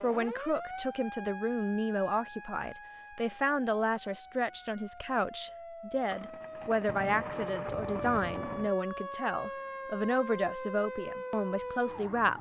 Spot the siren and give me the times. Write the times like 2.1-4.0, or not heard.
0.0-12.3.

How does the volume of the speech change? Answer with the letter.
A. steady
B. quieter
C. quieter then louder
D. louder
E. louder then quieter
A.